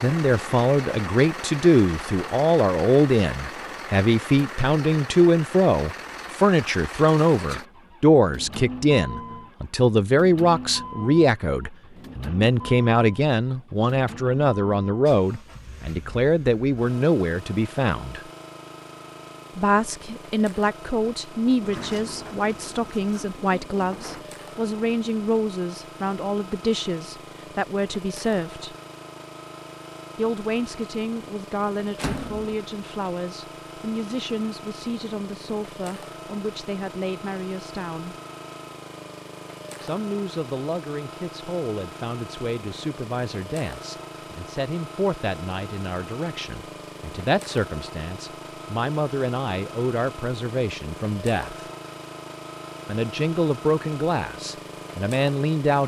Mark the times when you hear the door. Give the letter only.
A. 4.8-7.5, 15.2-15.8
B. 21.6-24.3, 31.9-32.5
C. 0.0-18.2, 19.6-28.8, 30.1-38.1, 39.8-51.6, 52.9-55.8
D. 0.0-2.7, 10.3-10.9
B.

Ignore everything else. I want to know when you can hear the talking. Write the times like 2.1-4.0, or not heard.
0.0-18.2, 19.6-28.8, 30.1-38.1, 39.8-51.6, 52.9-55.8.